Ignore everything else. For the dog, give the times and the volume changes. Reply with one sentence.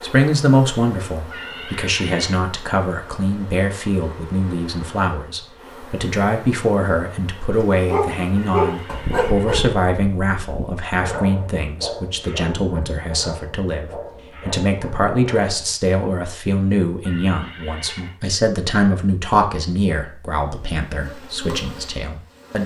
The dog can be heard from 7.5 to 15.8 s, getting quieter.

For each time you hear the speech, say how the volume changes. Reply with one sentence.
You can hear the speech from 0.0 to 22.6 s, at a steady volume.